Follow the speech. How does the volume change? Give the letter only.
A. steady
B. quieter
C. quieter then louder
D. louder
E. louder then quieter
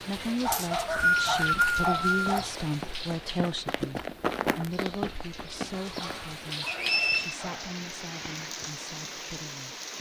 B.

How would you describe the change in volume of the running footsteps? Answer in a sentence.
The volume of the running footsteps goes up, then down.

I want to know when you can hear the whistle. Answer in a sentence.
You can hear the whistle from 0.5 to 2.2 s and from 6.7 to 7.3 s.